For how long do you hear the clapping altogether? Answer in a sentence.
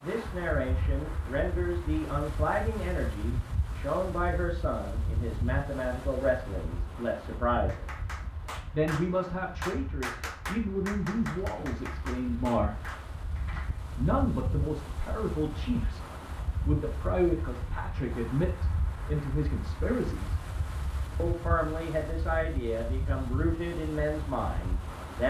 The clapping can be heard for 6 seconds in total.